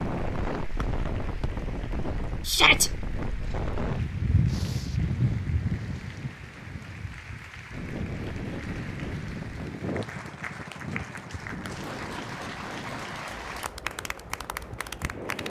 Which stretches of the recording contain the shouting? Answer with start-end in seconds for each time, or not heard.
2.5-2.9.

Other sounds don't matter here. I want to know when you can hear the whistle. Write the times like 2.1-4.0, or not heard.
0.8-1.5.